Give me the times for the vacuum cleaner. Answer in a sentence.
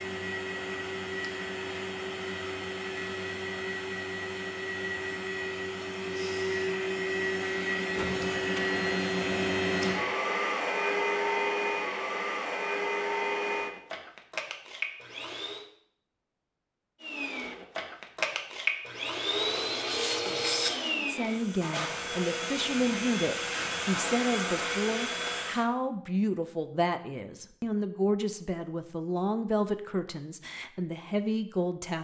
You can hear the vacuum cleaner from 0.0 to 15.7 s and from 17.0 to 25.6 s.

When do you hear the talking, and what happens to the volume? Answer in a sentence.
The talking can be heard from 20.9 to 31.9 s, at a steady volume.